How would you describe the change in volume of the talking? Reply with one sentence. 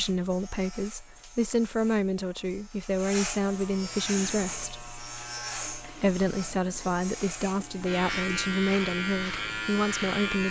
The loudness of the talking stays about the same.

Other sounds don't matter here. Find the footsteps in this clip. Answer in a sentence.
You can't hear the footsteps here.